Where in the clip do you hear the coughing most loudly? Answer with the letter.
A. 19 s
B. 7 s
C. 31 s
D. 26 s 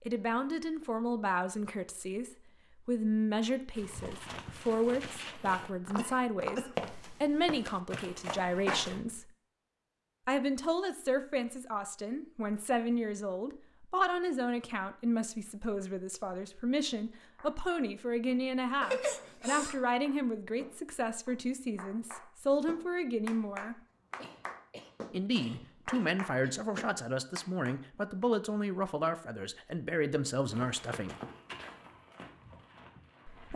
A.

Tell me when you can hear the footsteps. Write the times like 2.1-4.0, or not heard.
3.8-9.0, 30.5-33.5.